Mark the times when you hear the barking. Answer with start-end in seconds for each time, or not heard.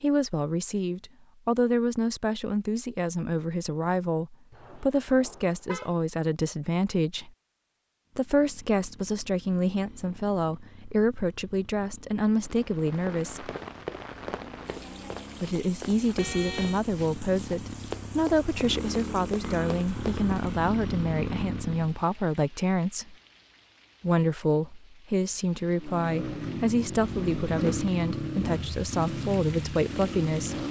not heard.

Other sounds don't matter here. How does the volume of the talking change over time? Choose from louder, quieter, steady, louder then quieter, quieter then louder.
steady.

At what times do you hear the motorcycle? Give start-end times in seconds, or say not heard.
8.1-22.1, 25.8-30.6.